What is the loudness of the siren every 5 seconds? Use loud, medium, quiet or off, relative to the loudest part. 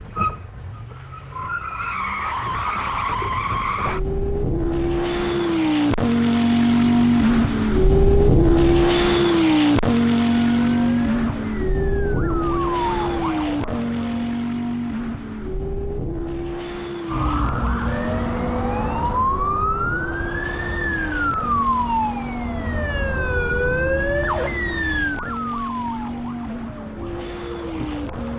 off, off, medium, loud, loud, medium.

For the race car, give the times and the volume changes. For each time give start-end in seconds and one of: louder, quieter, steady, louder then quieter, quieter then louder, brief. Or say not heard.
0.0-28.3 louder then quieter.